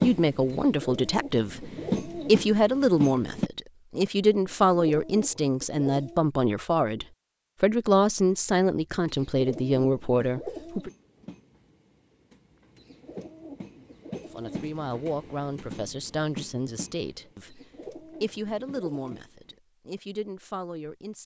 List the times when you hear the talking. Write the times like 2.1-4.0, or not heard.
0.0-10.9, 14.3-21.2.